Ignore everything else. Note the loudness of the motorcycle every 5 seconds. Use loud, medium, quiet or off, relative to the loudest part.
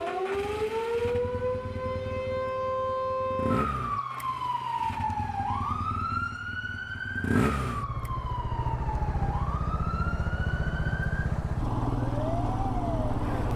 medium, loud, loud.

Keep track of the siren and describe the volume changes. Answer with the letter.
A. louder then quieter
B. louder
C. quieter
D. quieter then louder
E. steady
C.